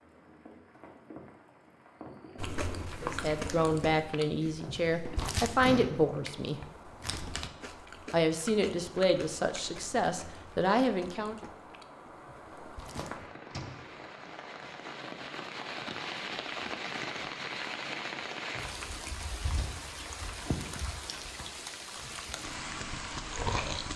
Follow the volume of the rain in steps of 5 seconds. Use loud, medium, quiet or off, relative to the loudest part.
quiet, quiet, medium, loud, loud.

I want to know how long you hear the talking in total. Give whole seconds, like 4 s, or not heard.
7 s.